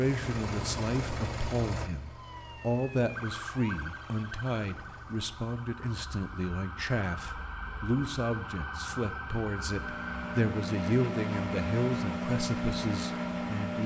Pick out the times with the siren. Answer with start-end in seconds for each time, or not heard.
2.1-10.6.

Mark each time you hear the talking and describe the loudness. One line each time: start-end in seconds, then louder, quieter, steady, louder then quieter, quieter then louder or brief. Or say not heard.
0.0-13.8 steady.